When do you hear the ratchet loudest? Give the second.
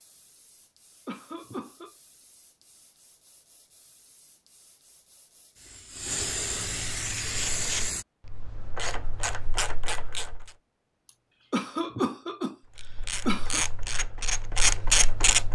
15 s.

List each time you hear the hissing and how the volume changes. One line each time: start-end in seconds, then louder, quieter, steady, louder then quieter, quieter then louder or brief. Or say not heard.
0.0-8.1 louder.